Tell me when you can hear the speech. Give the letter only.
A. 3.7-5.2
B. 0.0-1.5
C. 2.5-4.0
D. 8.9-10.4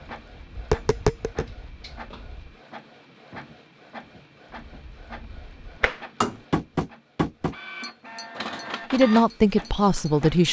D.